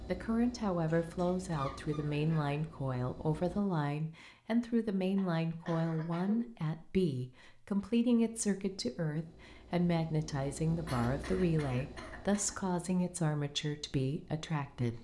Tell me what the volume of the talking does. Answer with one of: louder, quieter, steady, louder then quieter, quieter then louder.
steady.